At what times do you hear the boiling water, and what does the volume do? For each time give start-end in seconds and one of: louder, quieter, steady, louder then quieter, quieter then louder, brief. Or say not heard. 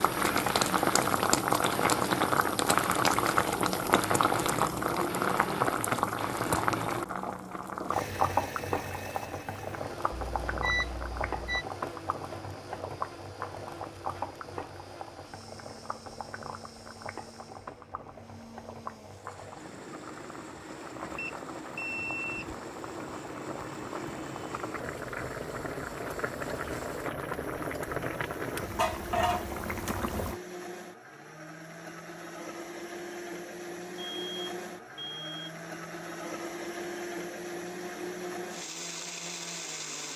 0.0-30.4 quieter then louder.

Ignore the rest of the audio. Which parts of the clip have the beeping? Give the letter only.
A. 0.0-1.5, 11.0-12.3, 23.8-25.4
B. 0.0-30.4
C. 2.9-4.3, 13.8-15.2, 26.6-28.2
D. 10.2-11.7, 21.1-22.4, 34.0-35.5
D.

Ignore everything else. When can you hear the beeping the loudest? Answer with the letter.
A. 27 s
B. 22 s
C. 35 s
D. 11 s
D.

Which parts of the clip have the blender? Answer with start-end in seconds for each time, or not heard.
0.0-40.1.